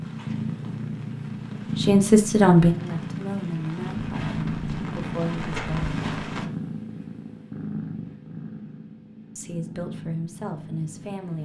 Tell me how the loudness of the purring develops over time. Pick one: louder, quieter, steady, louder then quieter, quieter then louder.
quieter.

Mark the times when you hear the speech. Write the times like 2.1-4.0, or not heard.
1.8-6.0, 9.3-11.4.